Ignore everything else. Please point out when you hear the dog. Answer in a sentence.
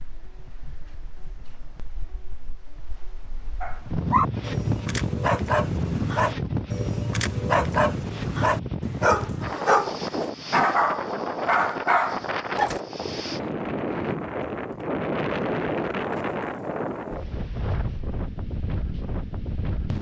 You can hear the dog from 3.6 to 12.8 s.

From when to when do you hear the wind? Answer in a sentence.
The wind can be heard from 0.0 to 19.9 s.